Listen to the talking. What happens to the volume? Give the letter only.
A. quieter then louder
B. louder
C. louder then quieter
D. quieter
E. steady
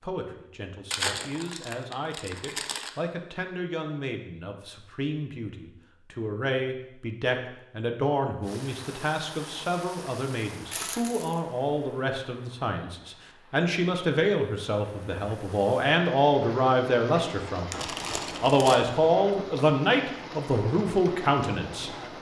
B.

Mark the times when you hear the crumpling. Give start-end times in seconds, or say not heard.
0.9-2.9, 10.7-11.4, 17.7-18.8.